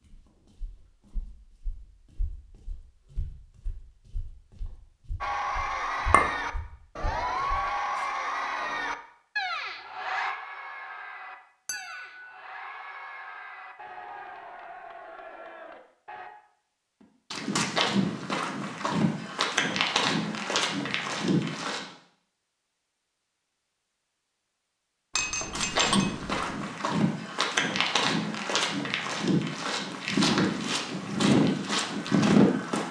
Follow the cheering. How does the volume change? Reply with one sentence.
The volume of the cheering goes down.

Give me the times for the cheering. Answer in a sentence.
You can hear the cheering from 5.2 to 16.3 s.